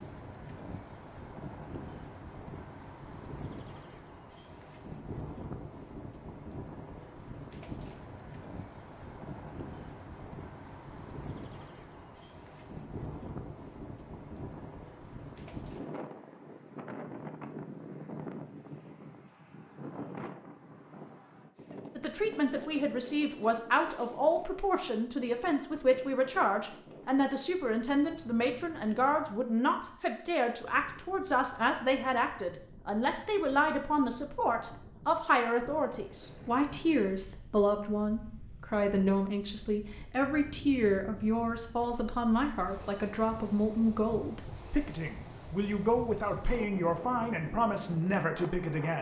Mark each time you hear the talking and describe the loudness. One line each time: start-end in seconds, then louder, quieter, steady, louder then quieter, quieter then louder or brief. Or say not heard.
21.9-48.9 steady.